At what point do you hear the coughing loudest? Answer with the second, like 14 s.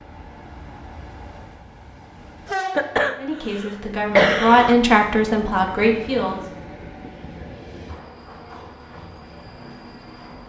4 s.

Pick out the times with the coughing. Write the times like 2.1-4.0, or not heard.
2.8-4.8.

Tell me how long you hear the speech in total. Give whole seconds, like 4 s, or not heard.
3 s.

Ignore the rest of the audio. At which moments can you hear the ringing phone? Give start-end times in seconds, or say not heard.
not heard.